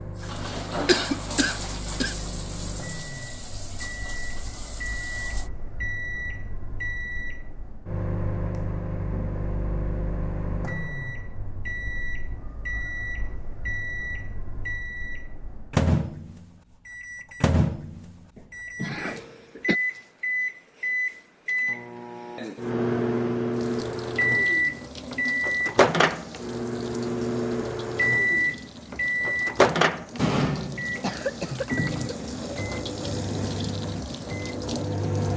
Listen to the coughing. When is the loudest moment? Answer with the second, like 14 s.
1 s.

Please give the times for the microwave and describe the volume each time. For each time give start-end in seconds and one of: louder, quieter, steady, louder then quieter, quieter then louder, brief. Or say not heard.
0.0-35.3 louder.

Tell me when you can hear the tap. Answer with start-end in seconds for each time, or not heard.
0.0-5.5, 23.5-35.3.